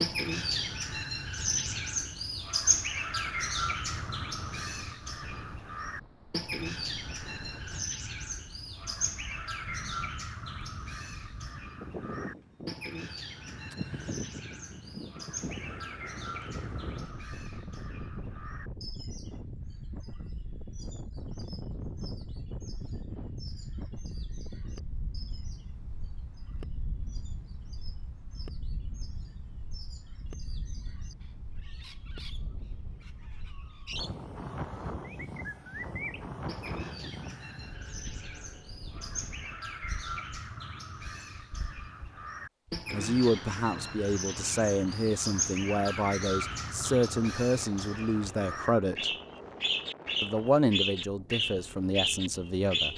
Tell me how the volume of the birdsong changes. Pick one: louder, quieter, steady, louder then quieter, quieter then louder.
quieter then louder.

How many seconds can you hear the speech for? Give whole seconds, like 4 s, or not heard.
9 s.